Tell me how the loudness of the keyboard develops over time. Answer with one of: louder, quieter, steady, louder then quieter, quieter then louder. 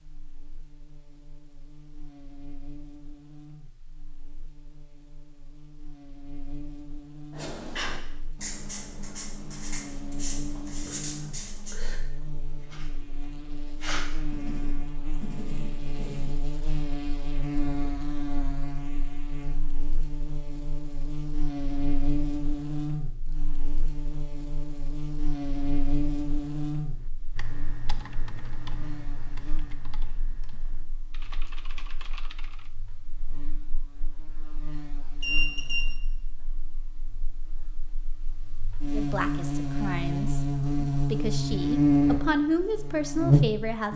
quieter then louder.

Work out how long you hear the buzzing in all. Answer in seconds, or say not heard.
44 s.